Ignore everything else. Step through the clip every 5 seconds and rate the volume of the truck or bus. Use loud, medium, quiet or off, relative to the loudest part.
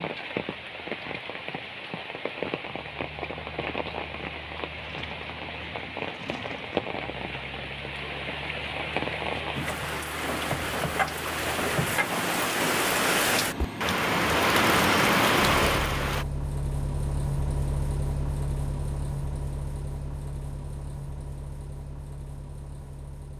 quiet, quiet, medium, loud, medium.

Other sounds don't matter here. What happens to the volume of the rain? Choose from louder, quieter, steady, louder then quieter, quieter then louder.
louder.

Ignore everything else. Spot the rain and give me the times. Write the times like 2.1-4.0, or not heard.
0.0-16.2.